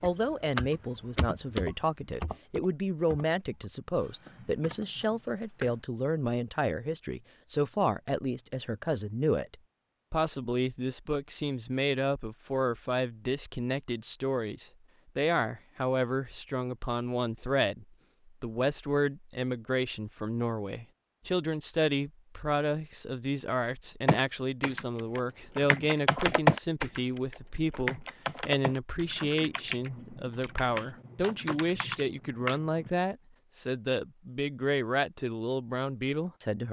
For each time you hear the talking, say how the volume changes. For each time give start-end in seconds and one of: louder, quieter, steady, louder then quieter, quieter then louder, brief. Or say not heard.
0.0-36.6 steady.